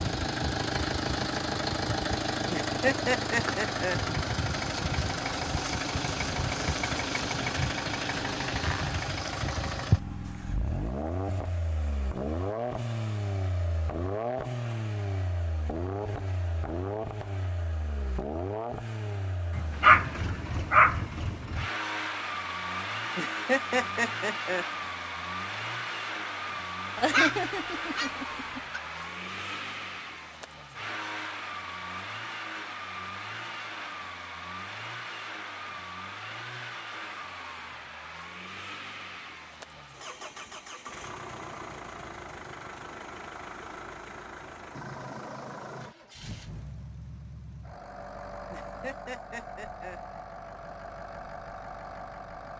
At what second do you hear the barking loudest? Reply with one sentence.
The loudest moment of the barking is at 20 seconds.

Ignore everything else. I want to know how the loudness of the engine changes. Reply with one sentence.
The volume of the engine goes down.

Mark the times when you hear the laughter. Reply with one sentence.
The laughter can be heard from 2.5 to 4.0 s, from 23.1 to 24.6 s and from 48.5 to 50.0 s.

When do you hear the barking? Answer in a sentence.
The barking can be heard from 19.6 to 21.1 s and from 26.9 to 28.8 s.